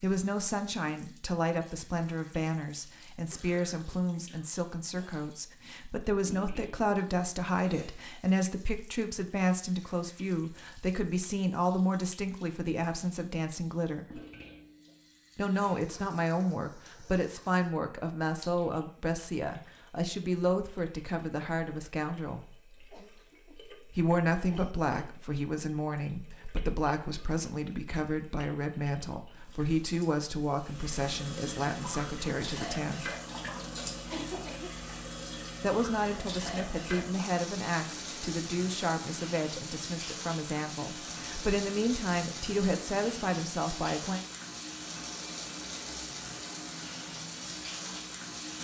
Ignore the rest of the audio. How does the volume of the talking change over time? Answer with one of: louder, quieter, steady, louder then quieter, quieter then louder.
steady.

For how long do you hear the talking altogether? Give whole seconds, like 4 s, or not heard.
39 s.